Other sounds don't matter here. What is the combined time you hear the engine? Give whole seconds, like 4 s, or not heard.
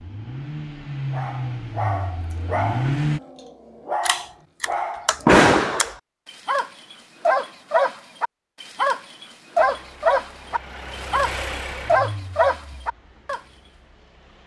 8 s.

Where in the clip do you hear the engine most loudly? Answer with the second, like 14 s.
3 s.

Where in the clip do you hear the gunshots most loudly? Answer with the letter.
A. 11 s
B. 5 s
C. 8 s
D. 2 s
B.